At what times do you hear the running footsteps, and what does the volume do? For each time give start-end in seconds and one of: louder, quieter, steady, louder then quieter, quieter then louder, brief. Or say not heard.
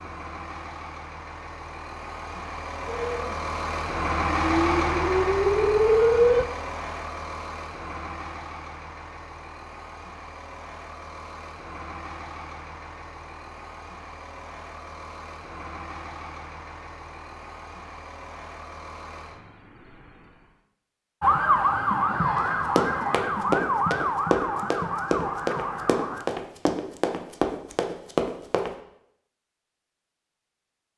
22.4-28.7 steady.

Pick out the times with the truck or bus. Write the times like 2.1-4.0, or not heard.
0.0-20.6.